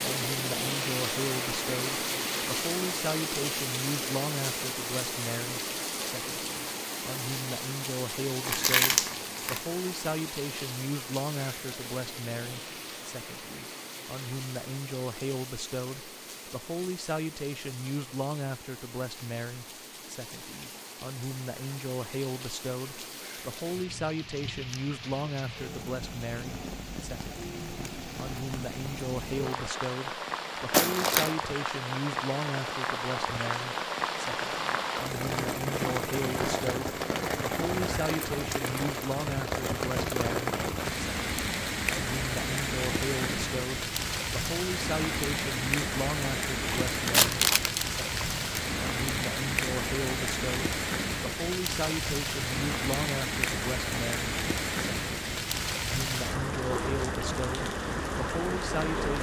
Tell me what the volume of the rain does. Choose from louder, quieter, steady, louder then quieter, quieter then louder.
quieter then louder.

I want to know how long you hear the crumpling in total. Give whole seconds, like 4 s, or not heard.
4 s.